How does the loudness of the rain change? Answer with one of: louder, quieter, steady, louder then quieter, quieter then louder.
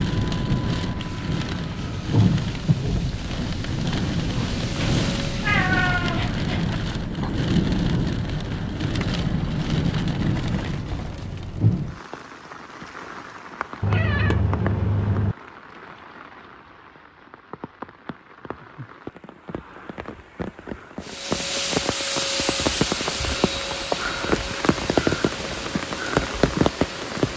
quieter then louder.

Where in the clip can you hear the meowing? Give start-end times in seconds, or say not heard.
4.8-6.8, 13.8-15.3.